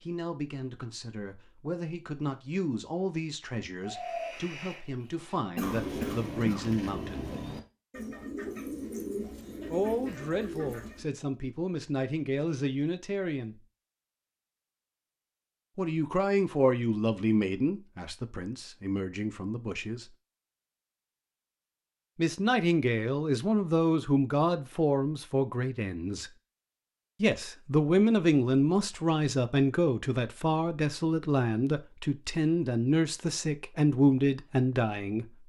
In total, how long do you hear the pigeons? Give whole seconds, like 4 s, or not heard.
7 s.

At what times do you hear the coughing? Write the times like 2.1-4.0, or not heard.
5.5-6.8.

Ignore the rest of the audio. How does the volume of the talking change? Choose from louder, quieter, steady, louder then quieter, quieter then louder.
louder.